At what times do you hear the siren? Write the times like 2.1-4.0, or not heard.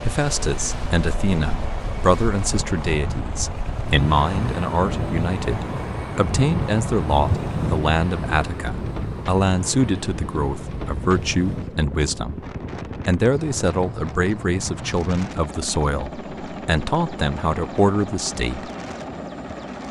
not heard.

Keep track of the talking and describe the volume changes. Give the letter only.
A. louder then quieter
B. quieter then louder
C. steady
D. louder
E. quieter
C.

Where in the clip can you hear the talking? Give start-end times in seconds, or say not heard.
0.0-12.4, 13.1-18.7.